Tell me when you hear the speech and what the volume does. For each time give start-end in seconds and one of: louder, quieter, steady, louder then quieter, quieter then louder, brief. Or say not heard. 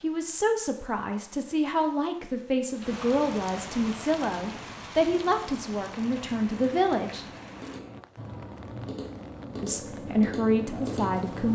0.0-7.2 steady
9.6-11.5 brief.